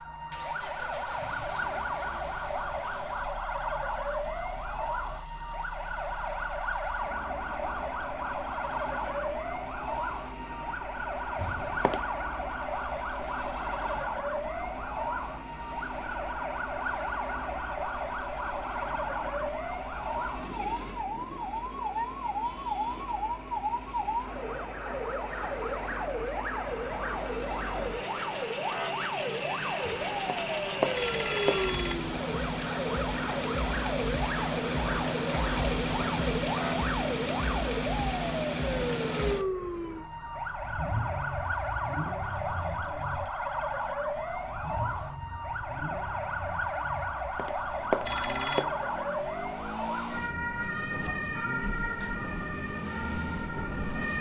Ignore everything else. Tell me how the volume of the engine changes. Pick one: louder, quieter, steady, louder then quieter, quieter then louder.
louder then quieter.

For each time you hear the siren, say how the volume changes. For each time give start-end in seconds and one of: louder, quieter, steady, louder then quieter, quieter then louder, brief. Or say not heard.
0.0-54.1 steady.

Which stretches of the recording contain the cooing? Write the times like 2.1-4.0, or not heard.
not heard.